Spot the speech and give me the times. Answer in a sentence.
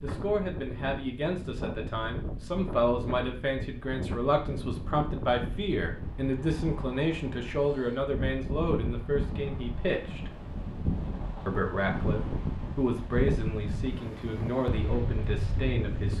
You can hear the speech from 0.0 to 10.3 s and from 11.4 to 16.1 s.